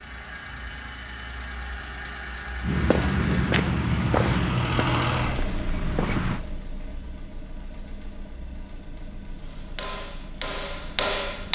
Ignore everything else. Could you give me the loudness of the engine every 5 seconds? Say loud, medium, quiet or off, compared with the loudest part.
loud, loud, quiet.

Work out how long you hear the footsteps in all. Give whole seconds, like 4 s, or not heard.
4 s.